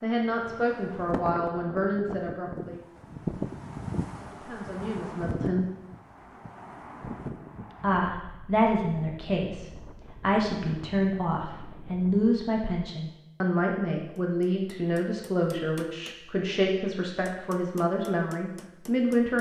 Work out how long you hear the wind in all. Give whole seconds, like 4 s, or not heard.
12 s.